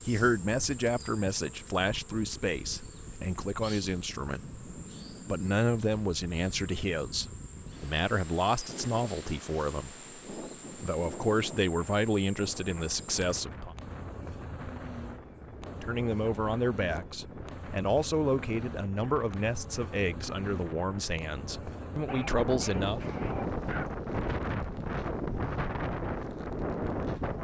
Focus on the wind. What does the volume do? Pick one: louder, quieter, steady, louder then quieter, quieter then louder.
louder.